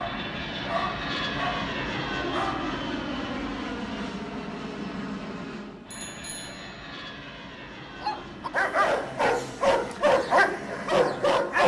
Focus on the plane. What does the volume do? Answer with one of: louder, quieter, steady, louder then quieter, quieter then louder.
quieter.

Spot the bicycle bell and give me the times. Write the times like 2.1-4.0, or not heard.
5.9-7.0.